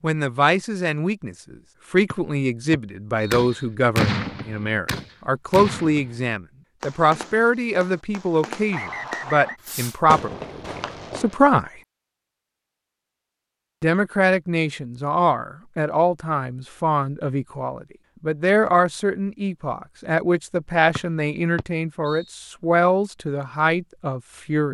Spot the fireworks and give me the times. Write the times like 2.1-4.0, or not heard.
3.3-11.3.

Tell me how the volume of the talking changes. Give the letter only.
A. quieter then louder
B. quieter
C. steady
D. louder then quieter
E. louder
C.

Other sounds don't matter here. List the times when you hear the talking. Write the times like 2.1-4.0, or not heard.
0.0-11.7, 13.8-24.7.